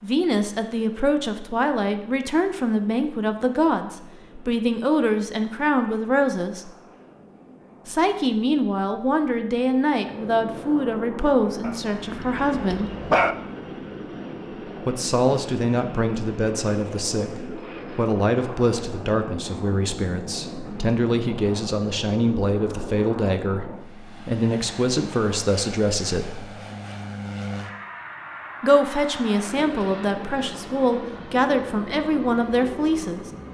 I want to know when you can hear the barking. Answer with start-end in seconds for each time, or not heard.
11.6-13.3.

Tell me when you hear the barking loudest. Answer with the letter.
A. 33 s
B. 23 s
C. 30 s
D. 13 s
D.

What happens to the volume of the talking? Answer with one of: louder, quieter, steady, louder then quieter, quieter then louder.
steady.